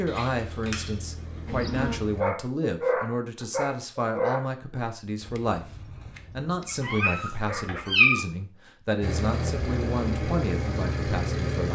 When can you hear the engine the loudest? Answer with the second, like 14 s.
11 s.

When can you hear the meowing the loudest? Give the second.
8 s.